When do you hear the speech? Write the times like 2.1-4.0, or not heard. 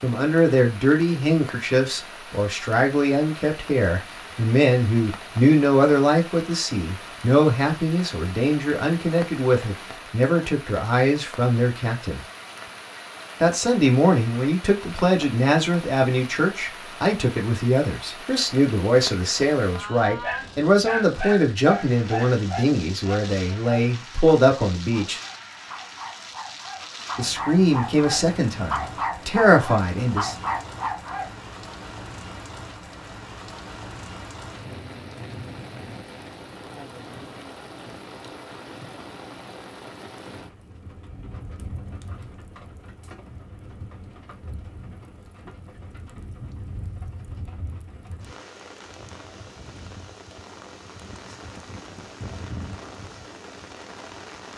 0.0-12.2, 13.4-25.2, 27.1-30.4.